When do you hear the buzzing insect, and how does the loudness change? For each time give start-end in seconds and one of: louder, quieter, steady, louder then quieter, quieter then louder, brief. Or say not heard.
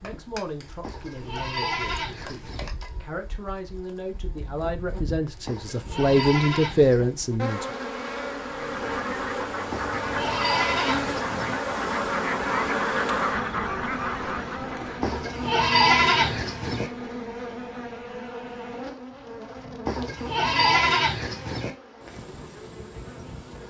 0.0-23.6 louder then quieter.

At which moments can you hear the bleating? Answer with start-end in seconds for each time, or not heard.
0.8-2.7, 5.5-7.1, 9.7-11.6, 15.0-16.9, 19.9-21.7.